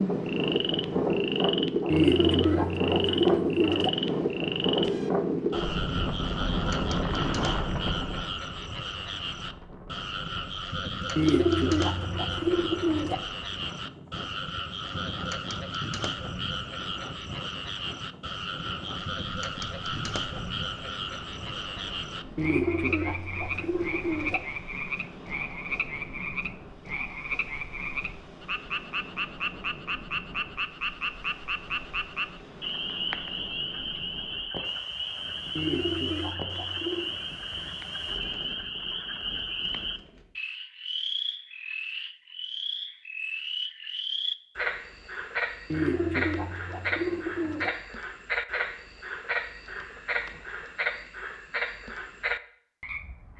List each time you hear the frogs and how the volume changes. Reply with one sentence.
The frogs can be heard from 0.0 to 53.3 s, at a steady volume.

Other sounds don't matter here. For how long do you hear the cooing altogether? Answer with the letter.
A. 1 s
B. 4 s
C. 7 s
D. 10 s
D.